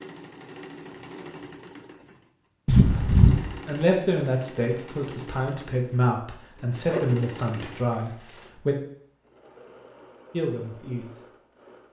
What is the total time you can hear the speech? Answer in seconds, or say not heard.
6 s.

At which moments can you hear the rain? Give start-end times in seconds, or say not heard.
not heard.